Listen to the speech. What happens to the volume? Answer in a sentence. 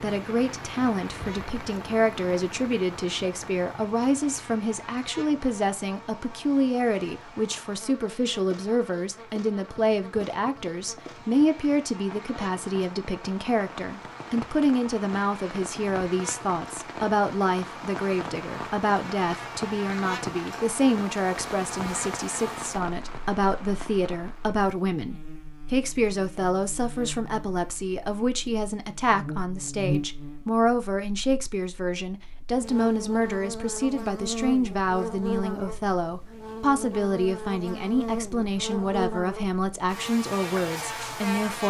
The loudness of the speech stays about the same.